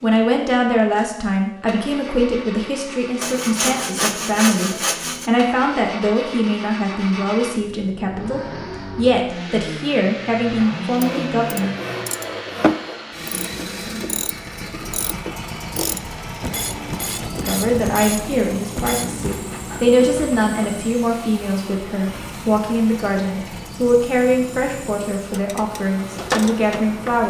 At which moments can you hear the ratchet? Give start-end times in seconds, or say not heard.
10.9-19.4, 25.2-27.2.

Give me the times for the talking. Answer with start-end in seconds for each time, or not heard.
0.0-11.7, 17.4-27.2.